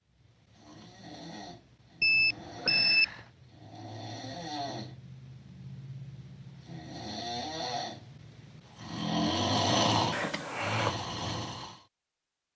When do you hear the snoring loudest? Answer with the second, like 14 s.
10 s.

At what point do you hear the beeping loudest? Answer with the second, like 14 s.
3 s.